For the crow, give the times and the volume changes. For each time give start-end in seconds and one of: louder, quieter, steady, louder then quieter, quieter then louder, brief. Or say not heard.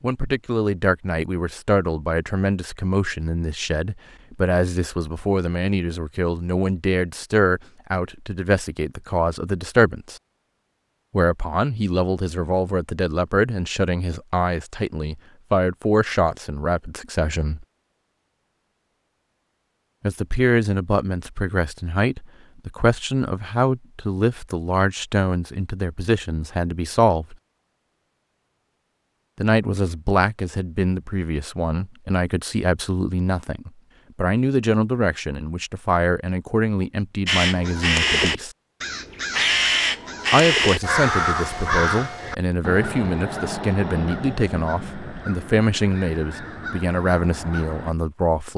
37.2-48.0 quieter.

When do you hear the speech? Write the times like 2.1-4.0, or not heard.
0.0-10.2, 11.1-17.6, 20.0-27.4, 29.4-38.5, 40.3-48.5.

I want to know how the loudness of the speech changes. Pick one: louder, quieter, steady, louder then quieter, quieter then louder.
steady.